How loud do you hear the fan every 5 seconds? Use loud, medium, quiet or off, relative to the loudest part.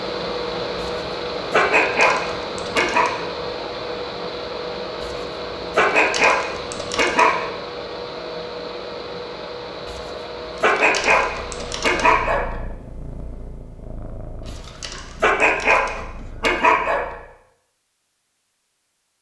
loud, loud, medium, off.